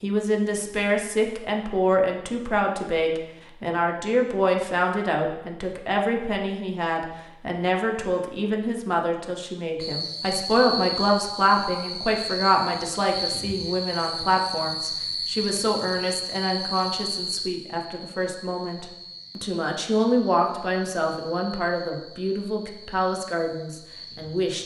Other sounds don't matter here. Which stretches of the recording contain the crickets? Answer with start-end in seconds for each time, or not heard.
9.8-24.6.